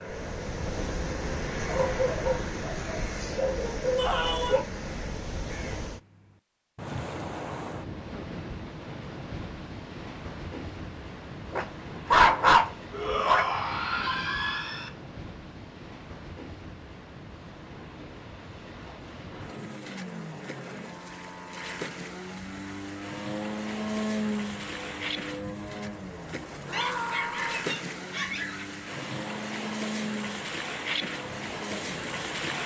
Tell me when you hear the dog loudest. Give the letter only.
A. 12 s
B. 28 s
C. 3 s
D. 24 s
A.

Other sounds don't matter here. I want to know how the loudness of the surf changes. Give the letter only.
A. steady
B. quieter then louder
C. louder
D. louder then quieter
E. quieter
B.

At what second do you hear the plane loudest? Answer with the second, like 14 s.
24 s.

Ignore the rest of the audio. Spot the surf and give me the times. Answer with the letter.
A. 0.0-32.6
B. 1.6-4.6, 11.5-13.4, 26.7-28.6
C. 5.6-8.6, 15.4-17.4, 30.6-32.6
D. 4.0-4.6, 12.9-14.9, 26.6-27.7
A.